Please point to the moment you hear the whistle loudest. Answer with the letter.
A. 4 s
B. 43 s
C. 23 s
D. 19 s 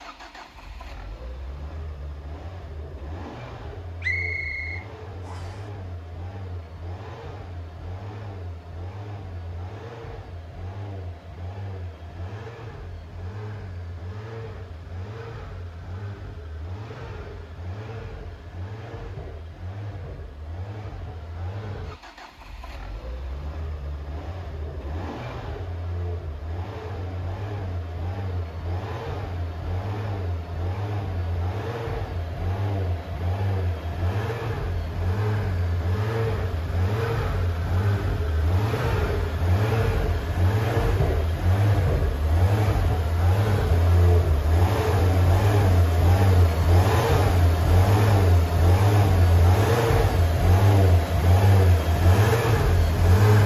A.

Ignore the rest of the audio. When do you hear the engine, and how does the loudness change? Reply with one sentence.
You can hear the engine from 0.0 to 53.4 s, getting louder.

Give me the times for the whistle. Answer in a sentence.
The whistle can be heard from 4.0 to 5.6 s.